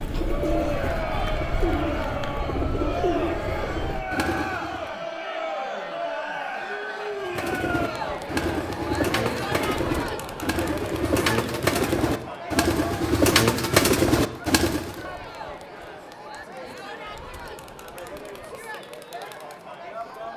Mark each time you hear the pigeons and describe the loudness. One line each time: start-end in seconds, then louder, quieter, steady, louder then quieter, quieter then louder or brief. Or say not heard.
0.0-4.9 steady
7.2-15.1 louder.